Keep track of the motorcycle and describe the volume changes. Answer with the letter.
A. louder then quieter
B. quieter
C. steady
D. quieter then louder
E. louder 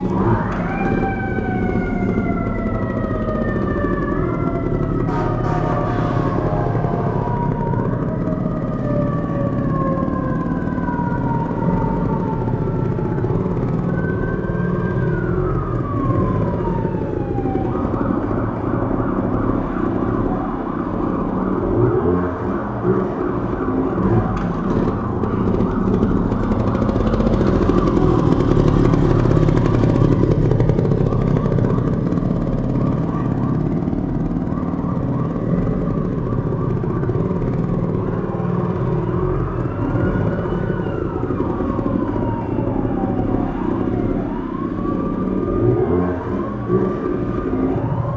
C.